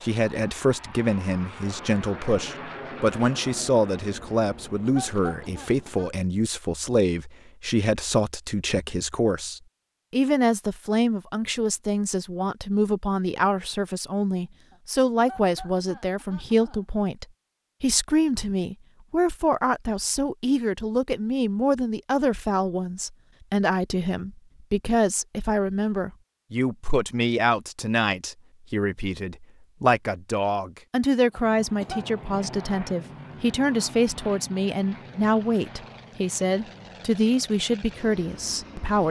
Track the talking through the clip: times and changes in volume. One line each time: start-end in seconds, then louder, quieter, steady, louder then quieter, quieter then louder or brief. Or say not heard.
0.0-39.0 steady.